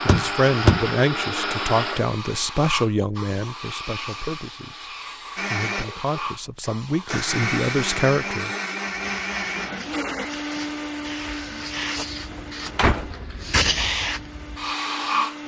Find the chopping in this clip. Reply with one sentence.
The chopping can't be heard in this clip.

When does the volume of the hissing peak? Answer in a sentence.
The volume of the hissing peaks at 14 seconds.